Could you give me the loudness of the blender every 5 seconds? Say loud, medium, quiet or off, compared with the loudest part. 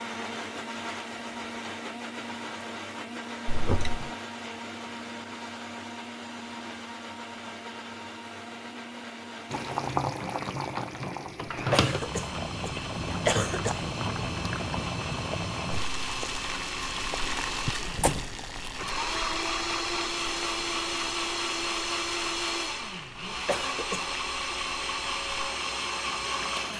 medium, medium, medium, loud, loud, loud.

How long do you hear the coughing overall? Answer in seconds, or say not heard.
4 s.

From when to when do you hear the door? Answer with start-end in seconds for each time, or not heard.
17.6-18.2.